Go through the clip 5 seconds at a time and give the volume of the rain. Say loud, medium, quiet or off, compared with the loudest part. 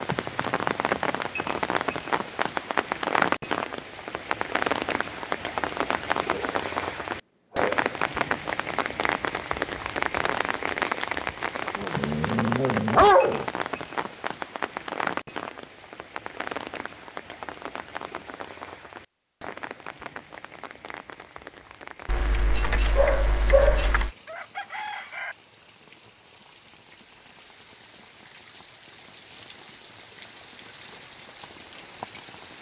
loud, loud, loud, medium, quiet, quiet, quiet.